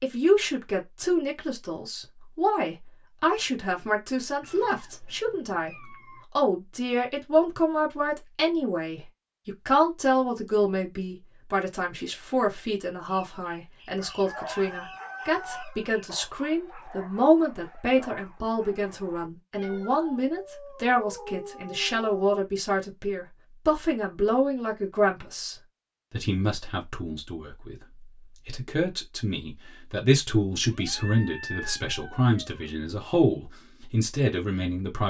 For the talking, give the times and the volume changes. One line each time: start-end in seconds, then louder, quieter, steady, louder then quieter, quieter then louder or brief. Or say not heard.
0.0-35.0 steady.